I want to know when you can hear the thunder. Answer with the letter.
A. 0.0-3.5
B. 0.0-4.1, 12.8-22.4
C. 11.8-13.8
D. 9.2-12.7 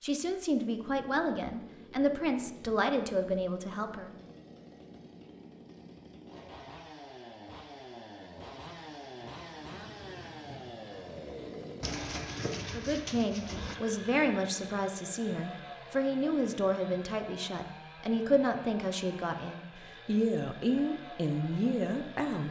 D.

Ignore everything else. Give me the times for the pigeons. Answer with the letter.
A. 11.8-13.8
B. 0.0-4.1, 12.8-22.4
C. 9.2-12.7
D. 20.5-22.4
A.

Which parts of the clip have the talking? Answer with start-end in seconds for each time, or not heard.
0.0-4.1, 12.8-22.4.